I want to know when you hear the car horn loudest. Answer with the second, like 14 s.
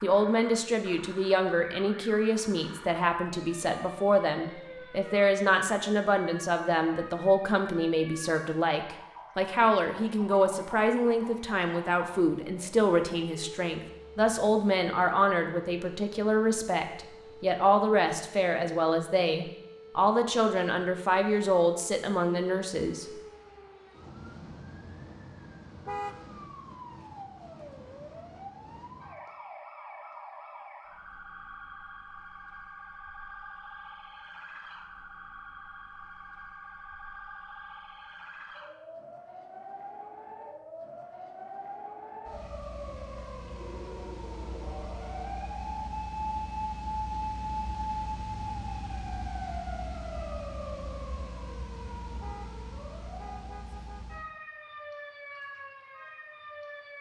26 s.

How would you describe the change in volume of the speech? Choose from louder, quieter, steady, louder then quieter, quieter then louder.
steady.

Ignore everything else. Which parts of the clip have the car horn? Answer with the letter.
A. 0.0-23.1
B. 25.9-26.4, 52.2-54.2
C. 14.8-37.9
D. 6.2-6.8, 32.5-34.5
B.